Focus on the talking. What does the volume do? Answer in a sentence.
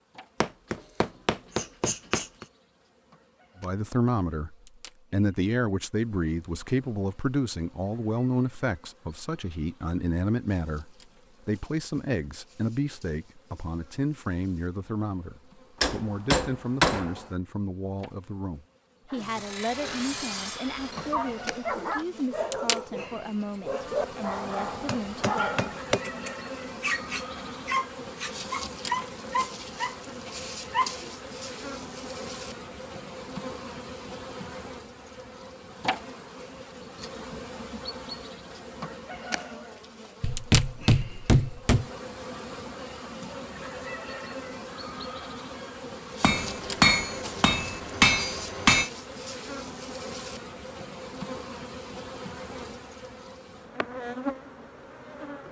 The volume of the talking goes down.